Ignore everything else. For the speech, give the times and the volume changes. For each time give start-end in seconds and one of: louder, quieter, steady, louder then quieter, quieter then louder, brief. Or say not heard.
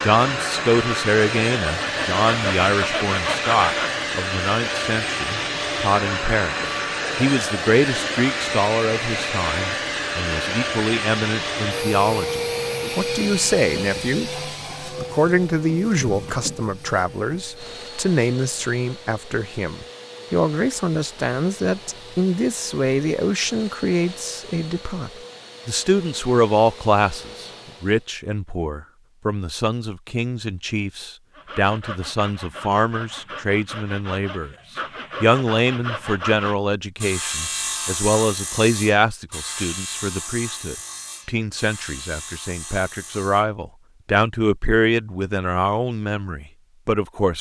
0.0-47.3 steady.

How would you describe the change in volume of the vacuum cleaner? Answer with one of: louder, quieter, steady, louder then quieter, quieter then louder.
quieter.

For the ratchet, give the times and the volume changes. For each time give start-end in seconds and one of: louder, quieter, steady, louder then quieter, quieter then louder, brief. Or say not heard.
not heard.